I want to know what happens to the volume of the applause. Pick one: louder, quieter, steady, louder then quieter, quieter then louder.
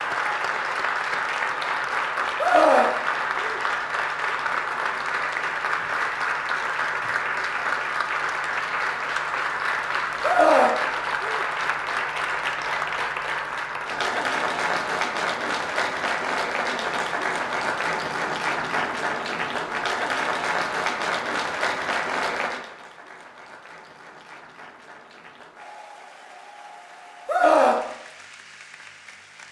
quieter.